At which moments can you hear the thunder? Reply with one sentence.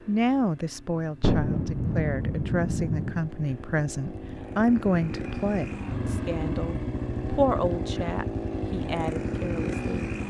You can hear the thunder from 1.2 to 3.2 s.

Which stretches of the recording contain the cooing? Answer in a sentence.
The cooing can't be heard in this clip.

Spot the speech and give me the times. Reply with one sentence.
You can hear the speech from 0.1 to 10.1 s.